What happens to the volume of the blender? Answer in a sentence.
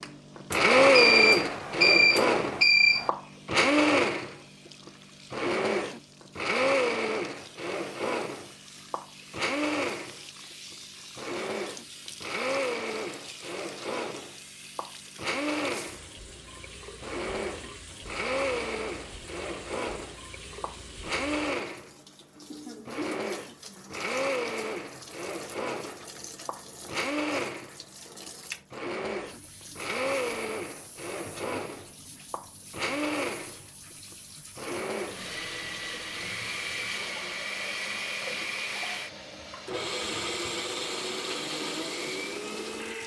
The volume of the blender goes down.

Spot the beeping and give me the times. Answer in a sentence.
The beeping can be heard from 0.5 to 3.1 s.